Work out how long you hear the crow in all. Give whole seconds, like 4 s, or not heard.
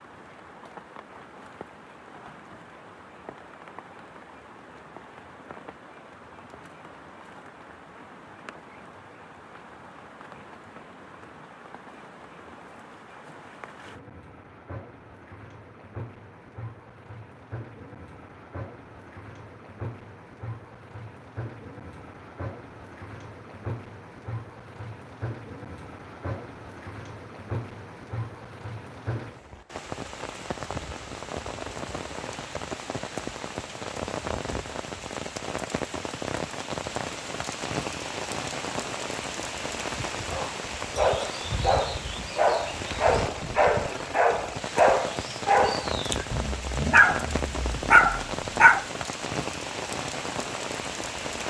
not heard.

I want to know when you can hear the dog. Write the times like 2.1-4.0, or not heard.
40.3-48.9.